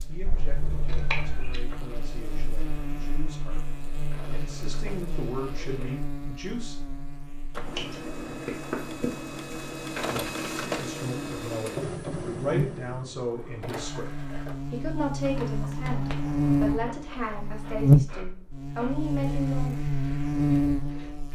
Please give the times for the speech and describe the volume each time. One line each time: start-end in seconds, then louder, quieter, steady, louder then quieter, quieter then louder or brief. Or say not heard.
0.1-6.8 louder
10.7-19.8 steady.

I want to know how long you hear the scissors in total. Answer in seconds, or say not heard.
4 s.